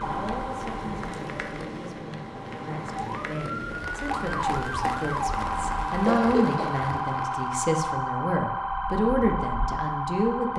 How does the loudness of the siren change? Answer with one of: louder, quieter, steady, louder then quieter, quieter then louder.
louder.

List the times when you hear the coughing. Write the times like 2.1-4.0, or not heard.
6.0-6.7.